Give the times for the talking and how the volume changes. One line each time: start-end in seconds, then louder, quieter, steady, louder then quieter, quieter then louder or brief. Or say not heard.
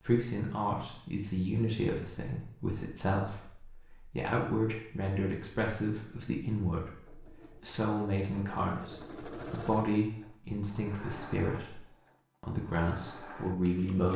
0.0-11.8 steady
12.4-14.1 brief.